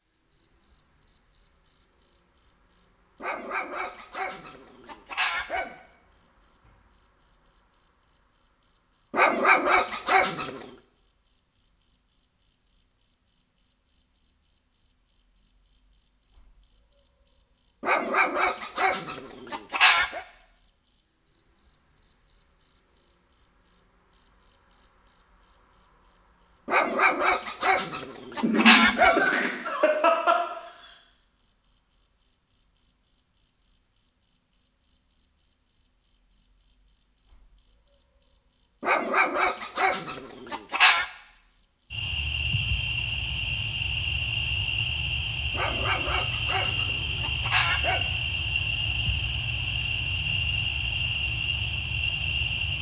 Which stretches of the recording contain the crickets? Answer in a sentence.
The crickets can be heard from 0.0 to 52.7 s.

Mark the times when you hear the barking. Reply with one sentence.
You can hear the barking from 3.2 to 5.8 s, from 9.1 to 10.7 s, from 17.8 to 20.2 s, from 26.6 to 29.3 s, from 38.8 to 41.0 s and from 45.5 to 48.0 s.